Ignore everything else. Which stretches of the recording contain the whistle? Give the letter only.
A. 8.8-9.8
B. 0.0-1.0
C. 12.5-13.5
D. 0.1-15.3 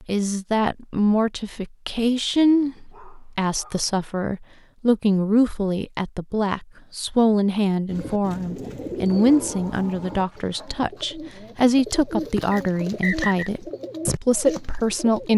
C.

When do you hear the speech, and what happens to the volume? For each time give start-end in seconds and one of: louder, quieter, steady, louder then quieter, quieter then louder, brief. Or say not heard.
0.1-15.3 steady.